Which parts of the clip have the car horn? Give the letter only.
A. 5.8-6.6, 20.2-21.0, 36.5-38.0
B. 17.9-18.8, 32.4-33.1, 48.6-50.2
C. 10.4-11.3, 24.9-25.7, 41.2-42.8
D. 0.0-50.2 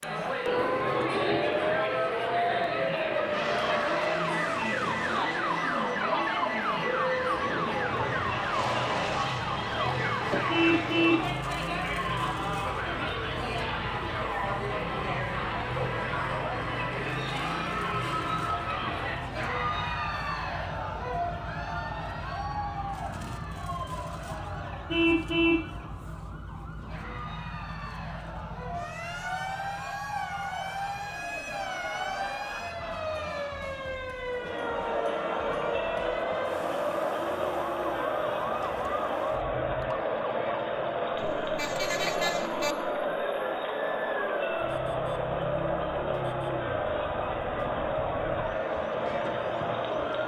C.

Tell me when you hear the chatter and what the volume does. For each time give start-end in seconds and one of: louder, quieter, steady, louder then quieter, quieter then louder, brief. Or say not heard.
0.0-50.2 quieter then louder.